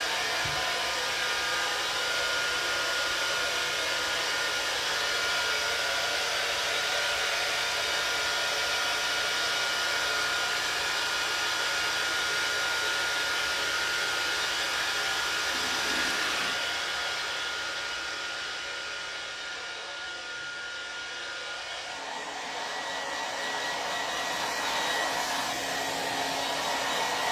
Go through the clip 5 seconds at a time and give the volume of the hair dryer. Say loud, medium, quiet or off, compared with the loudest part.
loud, loud, loud, loud, medium, loud.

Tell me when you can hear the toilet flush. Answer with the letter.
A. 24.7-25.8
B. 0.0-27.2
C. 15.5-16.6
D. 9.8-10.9
C.